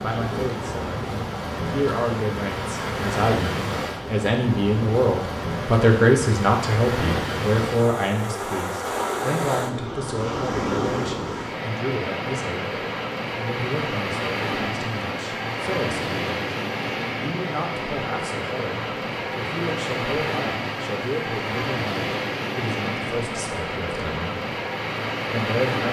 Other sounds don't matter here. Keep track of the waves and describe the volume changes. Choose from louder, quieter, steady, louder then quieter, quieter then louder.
steady.